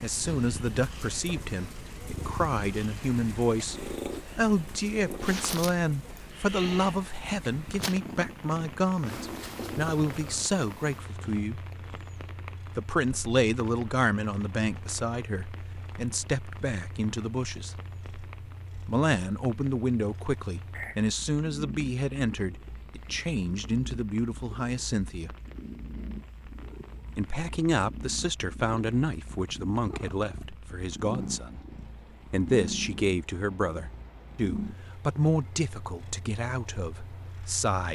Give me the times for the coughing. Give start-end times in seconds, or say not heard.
not heard.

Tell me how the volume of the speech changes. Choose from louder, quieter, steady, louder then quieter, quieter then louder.
steady.